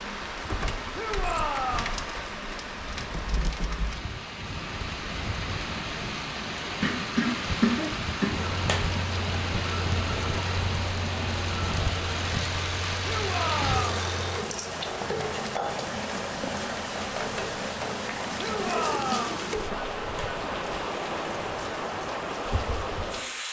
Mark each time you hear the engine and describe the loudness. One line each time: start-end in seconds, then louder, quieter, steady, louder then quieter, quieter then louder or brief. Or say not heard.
8.3-14.4 steady.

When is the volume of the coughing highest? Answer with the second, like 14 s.
8 s.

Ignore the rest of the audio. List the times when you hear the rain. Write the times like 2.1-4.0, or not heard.
0.0-23.4.